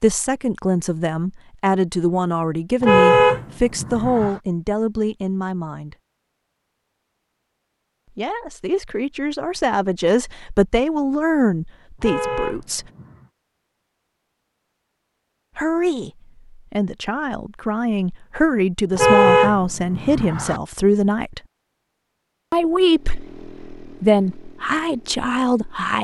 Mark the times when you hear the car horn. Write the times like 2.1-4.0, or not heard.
2.8-4.3, 12.0-13.2, 18.9-20.6.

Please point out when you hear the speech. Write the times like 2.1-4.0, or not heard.
0.0-6.0, 8.2-12.8, 15.6-21.4, 22.5-25.9.